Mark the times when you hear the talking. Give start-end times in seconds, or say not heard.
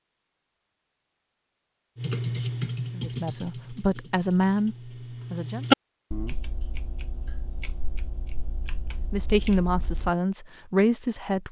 3.0-5.7, 9.1-11.4.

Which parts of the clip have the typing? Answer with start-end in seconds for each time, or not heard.
1.9-10.1.